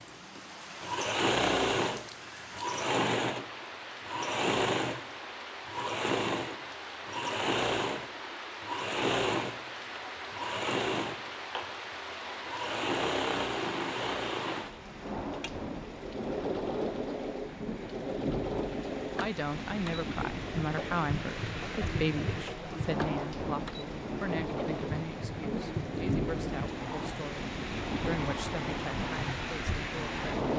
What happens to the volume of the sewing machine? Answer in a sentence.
The volume of the sewing machine goes down.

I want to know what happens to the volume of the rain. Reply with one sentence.
The volume of the rain goes up.